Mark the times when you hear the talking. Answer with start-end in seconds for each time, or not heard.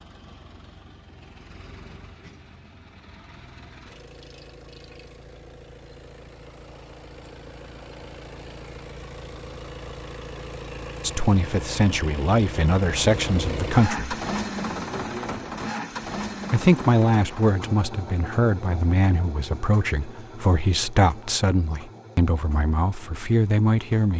11.0-14.2, 16.5-24.1.